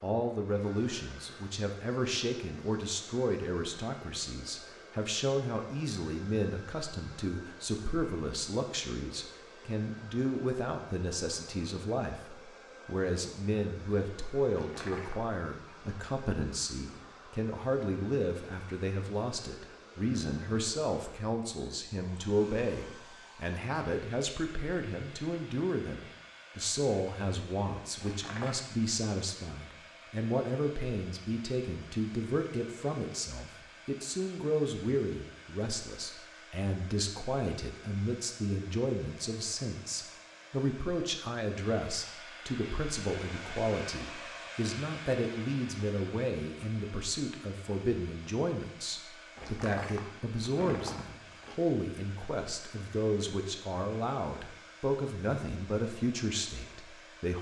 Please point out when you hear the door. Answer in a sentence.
The door can be heard from 14.5 to 15.2 s, from 28.0 to 28.6 s and from 49.4 to 51.6 s.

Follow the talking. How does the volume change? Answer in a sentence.
The loudness of the talking stays about the same.